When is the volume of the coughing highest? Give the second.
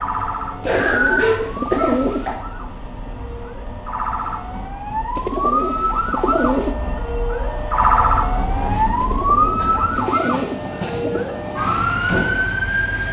1 s.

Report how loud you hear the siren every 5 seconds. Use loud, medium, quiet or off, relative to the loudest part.
medium, loud, loud.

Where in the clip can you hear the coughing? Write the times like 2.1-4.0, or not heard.
0.1-2.4, 8.8-9.9.